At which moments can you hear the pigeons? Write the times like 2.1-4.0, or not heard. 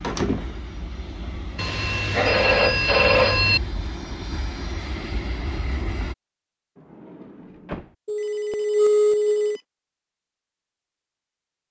not heard.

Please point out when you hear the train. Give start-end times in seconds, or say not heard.
0.0-6.2.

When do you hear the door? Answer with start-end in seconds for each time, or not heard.
0.0-0.6, 6.8-8.0.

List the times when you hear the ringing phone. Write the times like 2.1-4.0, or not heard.
1.6-3.6, 8.1-9.6.